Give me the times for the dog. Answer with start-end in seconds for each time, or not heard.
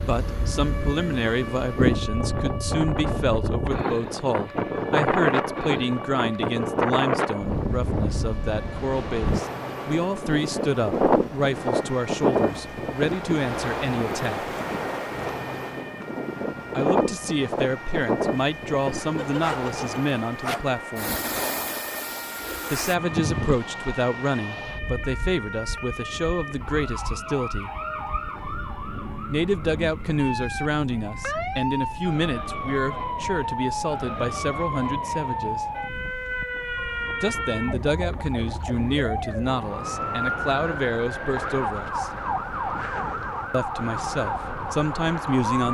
19.1-20.7.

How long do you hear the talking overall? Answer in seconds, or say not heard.
37 s.